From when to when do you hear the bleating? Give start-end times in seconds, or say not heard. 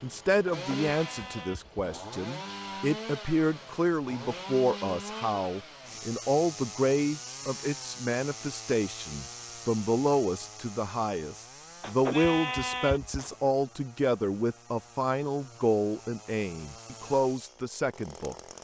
0.5-1.8, 11.8-13.3.